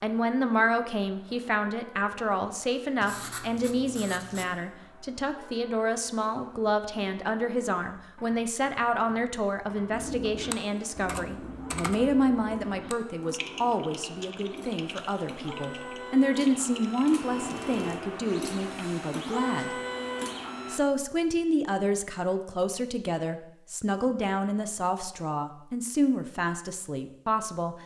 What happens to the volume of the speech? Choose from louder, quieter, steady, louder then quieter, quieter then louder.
steady.